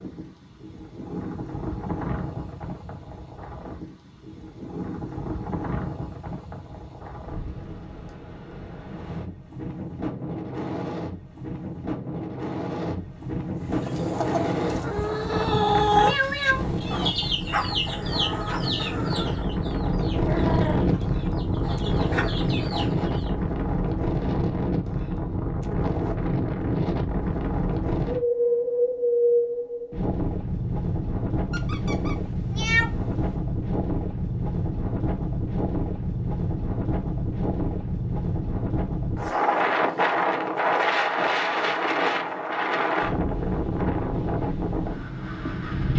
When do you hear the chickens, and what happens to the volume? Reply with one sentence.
You can hear the chickens from 13.7 to 23.3 s, getting quieter.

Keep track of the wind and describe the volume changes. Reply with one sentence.
The loudness of the wind goes up.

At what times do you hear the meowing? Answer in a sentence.
The meowing can be heard from 15.9 to 17.4 s and from 31.5 to 33.3 s.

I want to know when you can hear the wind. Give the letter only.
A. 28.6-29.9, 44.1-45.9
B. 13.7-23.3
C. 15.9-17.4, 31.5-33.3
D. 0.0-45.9
D.